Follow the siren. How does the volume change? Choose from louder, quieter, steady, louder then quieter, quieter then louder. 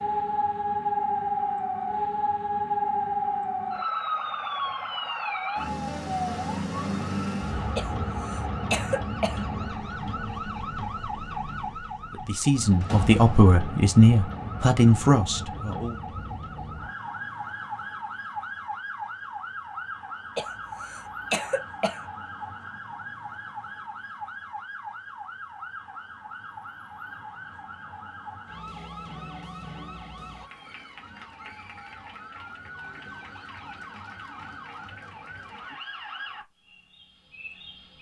quieter.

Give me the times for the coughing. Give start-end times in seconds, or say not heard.
7.8-9.4, 20.4-22.0.